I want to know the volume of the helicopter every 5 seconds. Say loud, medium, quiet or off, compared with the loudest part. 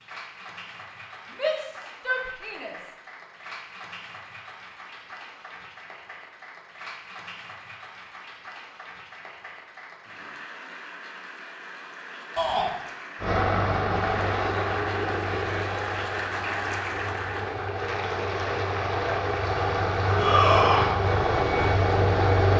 off, off, loud, medium, loud.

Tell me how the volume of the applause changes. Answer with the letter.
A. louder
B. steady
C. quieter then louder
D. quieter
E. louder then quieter
A.